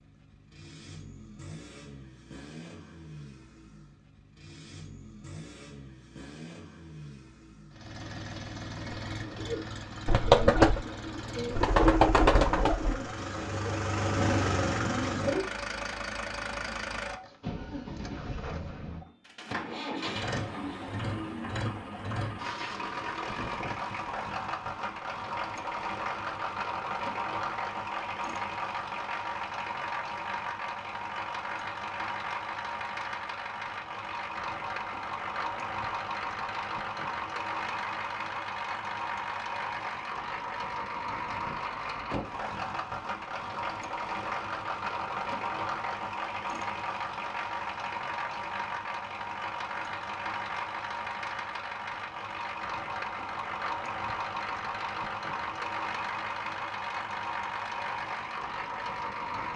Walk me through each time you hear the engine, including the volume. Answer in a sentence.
The engine can be heard from 0.0 to 59.5 s, getting louder.